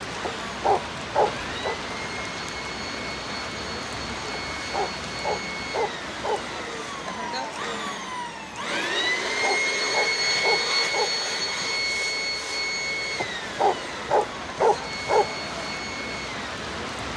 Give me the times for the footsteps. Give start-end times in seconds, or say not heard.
not heard.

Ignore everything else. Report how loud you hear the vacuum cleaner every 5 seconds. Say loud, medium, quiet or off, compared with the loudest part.
medium, loud, loud, medium.